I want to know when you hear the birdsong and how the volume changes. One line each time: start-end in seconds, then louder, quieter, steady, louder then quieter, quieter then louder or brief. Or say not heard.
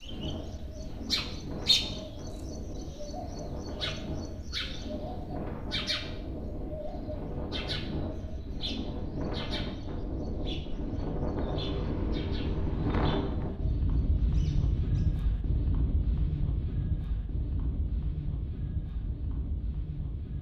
0.0-15.1 quieter.